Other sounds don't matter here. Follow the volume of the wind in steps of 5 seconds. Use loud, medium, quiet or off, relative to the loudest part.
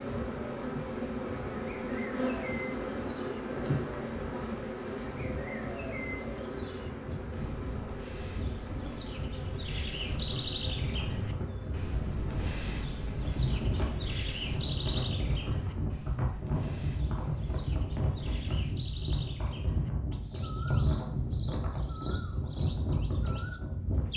quiet, medium, loud, loud, loud.